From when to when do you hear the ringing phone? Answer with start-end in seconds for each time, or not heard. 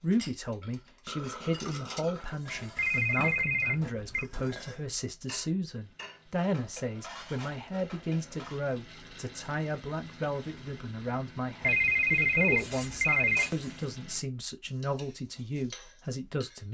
2.8-4.2, 11.6-13.5.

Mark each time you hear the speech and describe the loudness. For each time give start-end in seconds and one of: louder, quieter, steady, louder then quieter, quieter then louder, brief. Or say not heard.
0.0-16.6 steady.